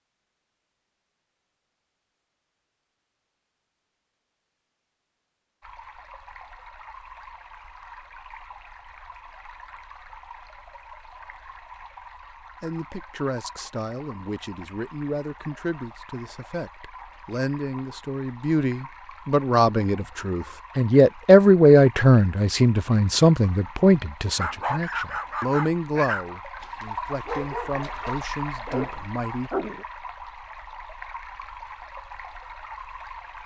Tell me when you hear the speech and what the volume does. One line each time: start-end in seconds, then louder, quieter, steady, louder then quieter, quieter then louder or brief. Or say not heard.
12.6-29.5 louder then quieter.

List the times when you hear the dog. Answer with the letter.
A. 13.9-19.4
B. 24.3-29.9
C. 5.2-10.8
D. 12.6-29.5
B.